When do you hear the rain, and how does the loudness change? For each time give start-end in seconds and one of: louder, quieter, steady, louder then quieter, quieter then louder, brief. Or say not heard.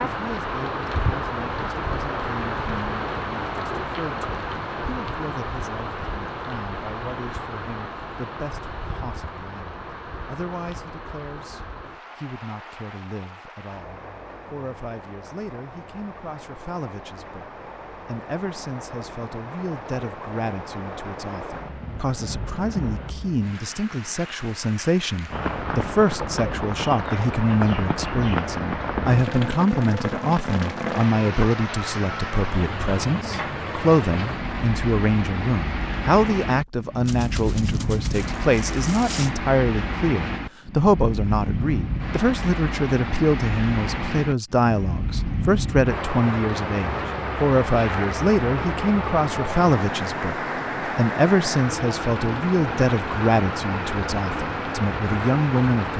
0.0-55.9 quieter then louder.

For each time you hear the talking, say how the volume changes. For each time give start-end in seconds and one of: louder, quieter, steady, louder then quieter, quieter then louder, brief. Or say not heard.
0.1-55.9 louder.